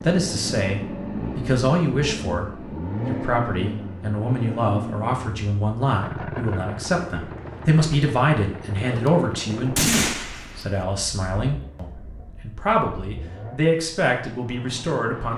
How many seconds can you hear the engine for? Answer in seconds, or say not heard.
15 s.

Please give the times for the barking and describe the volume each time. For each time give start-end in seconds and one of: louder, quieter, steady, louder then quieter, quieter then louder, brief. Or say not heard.
not heard.